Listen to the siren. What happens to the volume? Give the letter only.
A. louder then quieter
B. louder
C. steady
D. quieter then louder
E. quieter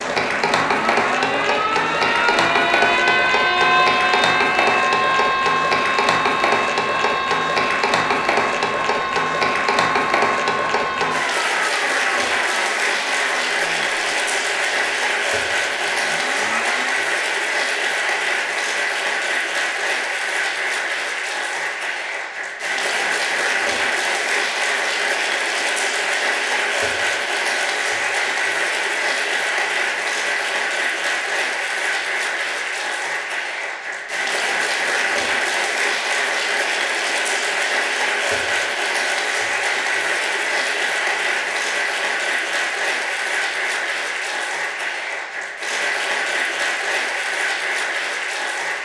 E.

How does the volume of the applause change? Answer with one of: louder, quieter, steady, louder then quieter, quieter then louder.
steady.